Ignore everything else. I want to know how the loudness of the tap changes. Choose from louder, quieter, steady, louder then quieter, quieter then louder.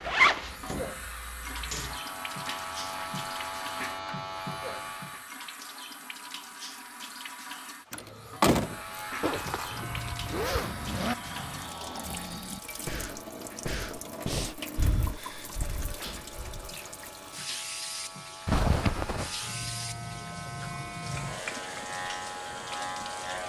steady.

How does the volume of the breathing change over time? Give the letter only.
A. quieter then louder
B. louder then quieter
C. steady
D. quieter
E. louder
B.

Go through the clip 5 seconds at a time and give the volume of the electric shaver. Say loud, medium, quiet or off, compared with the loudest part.
loud, loud, medium, medium, loud.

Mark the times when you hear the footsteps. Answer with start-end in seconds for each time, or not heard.
not heard.